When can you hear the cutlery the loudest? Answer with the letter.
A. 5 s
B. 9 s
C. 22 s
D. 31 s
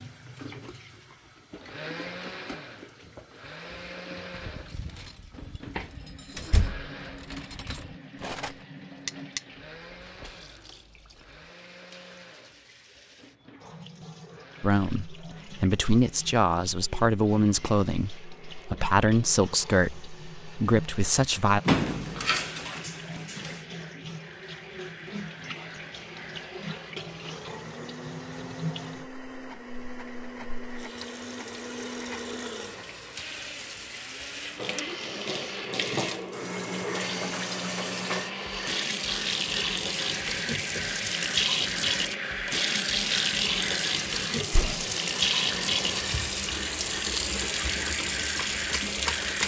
B.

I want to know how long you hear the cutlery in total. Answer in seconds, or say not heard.
5 s.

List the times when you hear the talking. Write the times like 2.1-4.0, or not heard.
14.6-21.6.